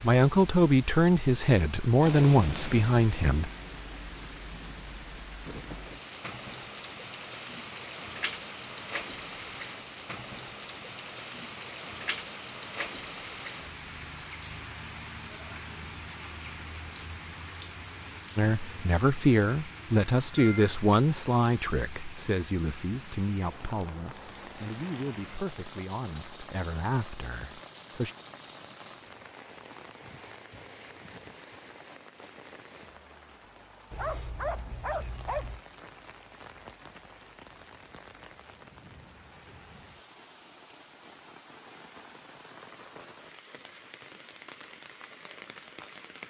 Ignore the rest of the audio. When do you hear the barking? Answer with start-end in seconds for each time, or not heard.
33.9-35.6.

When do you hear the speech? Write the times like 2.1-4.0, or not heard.
0.0-3.5, 18.4-28.1.